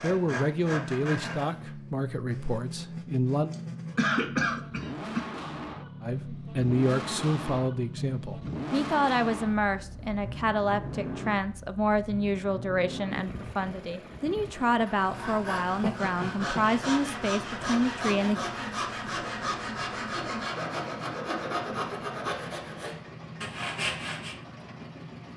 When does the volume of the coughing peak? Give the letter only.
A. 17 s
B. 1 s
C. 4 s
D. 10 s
C.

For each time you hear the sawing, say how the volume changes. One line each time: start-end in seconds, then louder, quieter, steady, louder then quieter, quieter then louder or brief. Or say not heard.
0.0-1.7 brief
14.7-24.4 steady.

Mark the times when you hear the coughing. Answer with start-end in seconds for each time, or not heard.
3.5-5.3, 15.8-16.7.